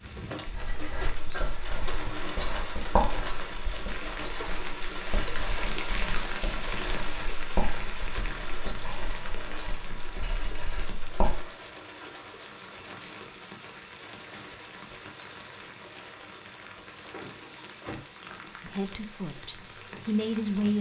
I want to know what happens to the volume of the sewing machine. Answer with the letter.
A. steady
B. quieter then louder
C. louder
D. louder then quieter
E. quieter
E.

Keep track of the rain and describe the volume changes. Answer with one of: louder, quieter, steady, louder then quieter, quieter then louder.
louder then quieter.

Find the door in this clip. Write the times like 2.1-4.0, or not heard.
17.1-18.0.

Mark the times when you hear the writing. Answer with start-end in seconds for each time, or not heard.
0.5-11.4.